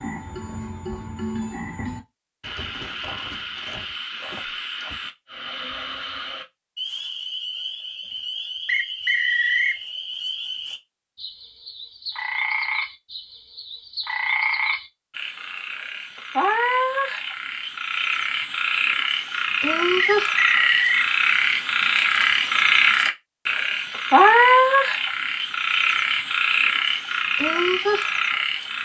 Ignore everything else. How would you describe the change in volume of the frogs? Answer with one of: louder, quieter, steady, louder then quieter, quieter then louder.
louder.